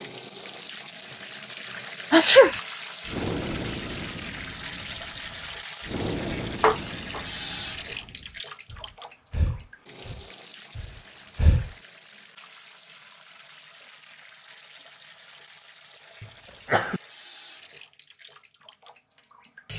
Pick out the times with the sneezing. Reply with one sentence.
You can hear the sneezing from 2.1 to 2.6 s, from 6.6 to 7.2 s and from 16.2 to 17.0 s.